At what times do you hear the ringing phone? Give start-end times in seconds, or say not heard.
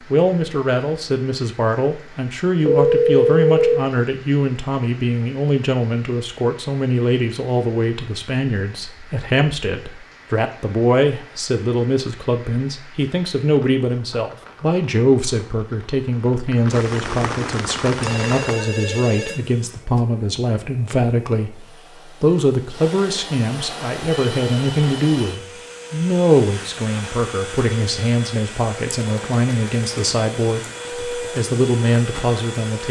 2.6-3.9, 18.0-20.1, 24.2-25.4.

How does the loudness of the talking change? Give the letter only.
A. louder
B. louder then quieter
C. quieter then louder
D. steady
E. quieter
D.